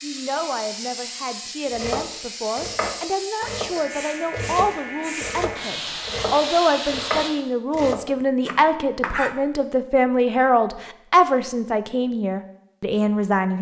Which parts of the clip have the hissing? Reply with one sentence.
The hissing can be heard from 0.0 to 7.3 s.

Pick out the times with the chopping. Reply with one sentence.
The chopping can be heard from 1.7 to 9.3 s.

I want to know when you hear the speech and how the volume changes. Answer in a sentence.
The speech can be heard from 0.0 to 13.5 s, getting louder.